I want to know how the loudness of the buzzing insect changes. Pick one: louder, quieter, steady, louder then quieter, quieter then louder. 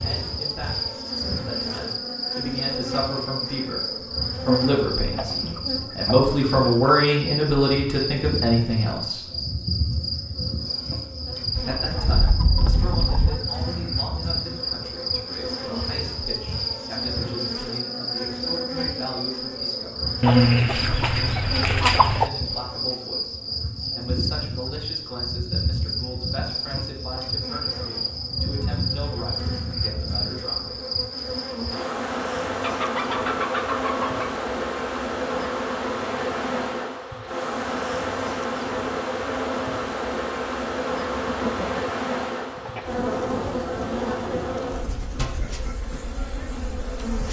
steady.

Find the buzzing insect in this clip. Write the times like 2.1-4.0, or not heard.
0.0-47.2.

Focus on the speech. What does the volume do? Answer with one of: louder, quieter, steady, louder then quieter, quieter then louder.
louder then quieter.